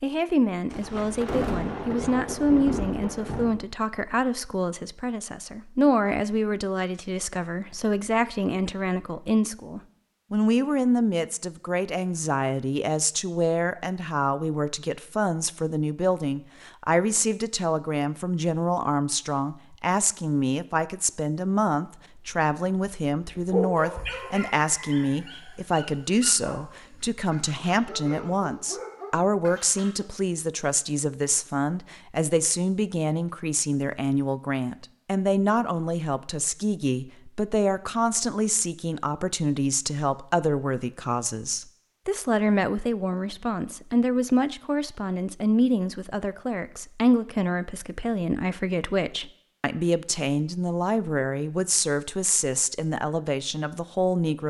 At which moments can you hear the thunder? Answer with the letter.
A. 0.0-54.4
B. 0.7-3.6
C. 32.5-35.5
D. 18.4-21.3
B.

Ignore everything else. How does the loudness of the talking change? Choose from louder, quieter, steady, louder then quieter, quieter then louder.
steady.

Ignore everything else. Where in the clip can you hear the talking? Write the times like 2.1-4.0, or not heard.
0.0-54.4.